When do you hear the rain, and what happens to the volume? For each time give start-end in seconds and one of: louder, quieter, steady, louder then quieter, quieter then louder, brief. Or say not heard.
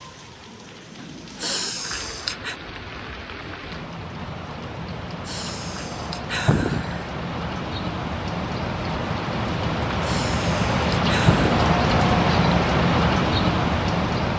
0.0-14.3 louder.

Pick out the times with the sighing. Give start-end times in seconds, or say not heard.
1.4-2.5, 5.2-7.0, 10.1-11.7.